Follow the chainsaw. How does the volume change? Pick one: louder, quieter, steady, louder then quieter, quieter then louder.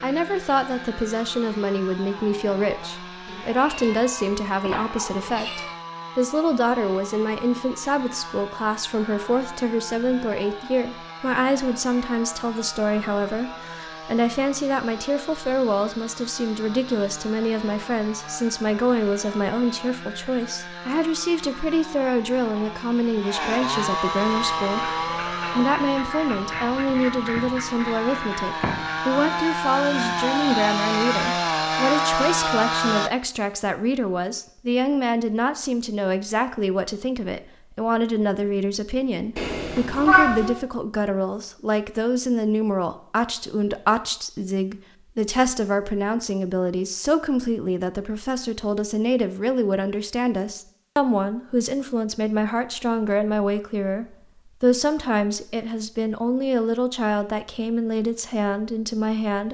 louder.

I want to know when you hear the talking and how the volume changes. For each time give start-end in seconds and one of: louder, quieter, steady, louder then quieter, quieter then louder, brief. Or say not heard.
0.0-59.4 steady.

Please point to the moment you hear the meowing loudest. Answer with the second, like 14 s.
40 s.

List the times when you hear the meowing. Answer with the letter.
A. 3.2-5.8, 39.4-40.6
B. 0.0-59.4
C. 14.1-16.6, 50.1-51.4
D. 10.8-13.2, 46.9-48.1
A.